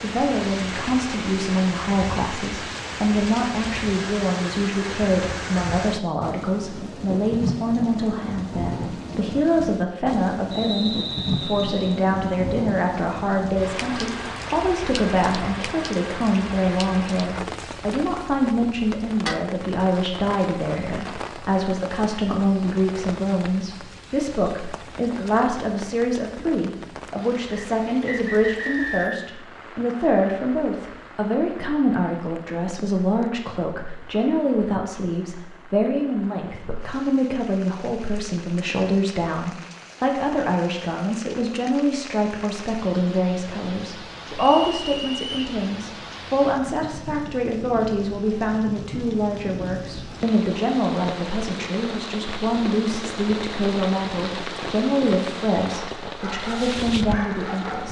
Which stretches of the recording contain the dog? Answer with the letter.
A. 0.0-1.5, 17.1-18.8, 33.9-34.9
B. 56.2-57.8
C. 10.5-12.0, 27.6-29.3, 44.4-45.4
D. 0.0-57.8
B.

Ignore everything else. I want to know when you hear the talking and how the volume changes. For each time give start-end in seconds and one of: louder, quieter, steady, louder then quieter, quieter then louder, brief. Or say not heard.
0.0-57.8 steady.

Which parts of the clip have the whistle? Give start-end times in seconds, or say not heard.
10.5-12.0, 27.6-29.3, 44.4-45.4.